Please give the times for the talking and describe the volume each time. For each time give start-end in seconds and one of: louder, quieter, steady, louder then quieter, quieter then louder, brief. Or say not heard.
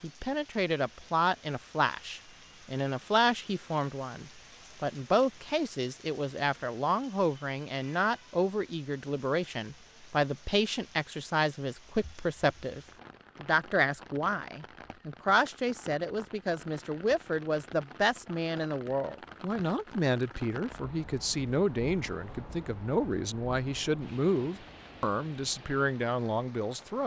0.0-27.0 steady.